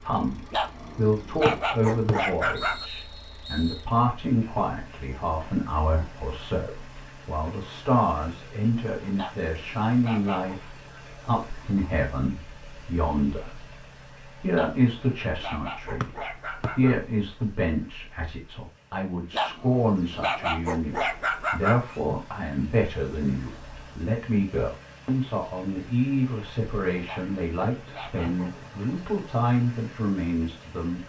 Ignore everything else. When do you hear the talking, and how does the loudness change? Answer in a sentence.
The talking can be heard from 0.0 to 31.0 s, at a steady volume.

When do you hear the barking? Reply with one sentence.
The barking can be heard from 0.5 to 2.9 s, from 9.2 to 10.6 s, from 14.5 to 17.0 s, from 19.3 to 22.0 s and from 27.1 to 28.7 s.